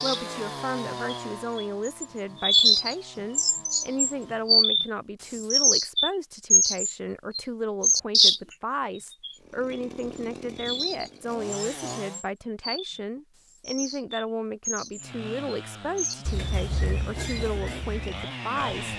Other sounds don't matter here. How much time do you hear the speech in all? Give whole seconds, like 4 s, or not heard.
19 s.